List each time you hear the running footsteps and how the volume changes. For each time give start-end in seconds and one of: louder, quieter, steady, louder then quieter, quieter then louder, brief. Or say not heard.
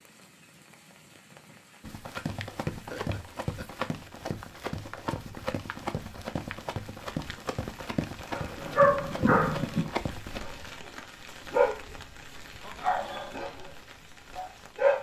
1.8-10.4 steady.